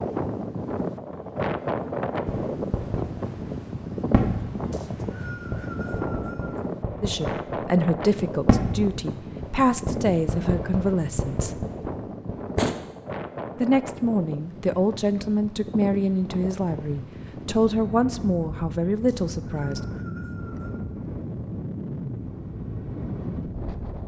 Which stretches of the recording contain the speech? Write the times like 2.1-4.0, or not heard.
7.0-11.7, 13.6-19.8.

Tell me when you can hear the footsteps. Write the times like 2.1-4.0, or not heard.
not heard.